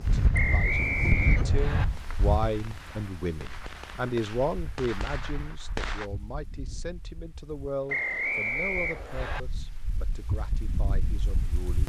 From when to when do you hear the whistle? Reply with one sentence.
You can hear the whistle from 0.3 to 1.9 s and from 7.8 to 9.4 s.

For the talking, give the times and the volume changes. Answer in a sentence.
The talking can be heard from 0.0 to 11.8 s, getting quieter.